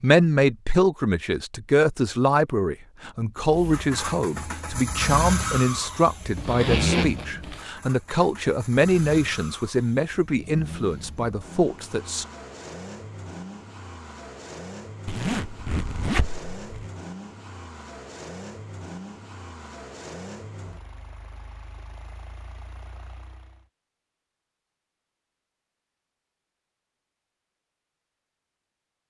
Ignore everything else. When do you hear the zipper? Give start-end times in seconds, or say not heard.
6.3-7.7, 15.1-16.9.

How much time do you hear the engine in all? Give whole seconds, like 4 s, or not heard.
20 s.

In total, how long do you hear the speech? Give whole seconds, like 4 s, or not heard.
12 s.